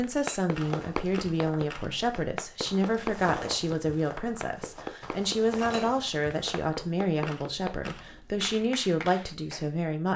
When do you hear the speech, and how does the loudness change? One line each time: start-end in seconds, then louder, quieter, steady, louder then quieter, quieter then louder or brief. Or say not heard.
0.0-10.1 steady.